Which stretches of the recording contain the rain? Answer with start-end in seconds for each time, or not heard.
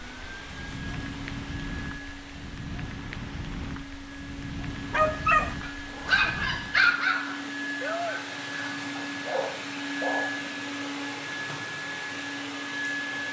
0.0-7.0.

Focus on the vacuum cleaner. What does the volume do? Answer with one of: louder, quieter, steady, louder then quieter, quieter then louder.
louder.